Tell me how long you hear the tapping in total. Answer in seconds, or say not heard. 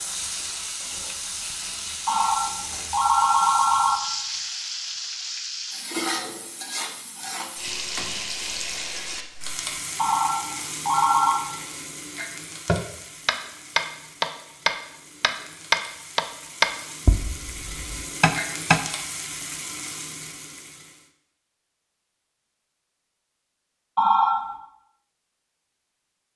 6 s.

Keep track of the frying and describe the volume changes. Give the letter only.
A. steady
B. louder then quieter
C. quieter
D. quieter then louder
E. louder
D.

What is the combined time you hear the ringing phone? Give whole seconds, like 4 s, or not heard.
4 s.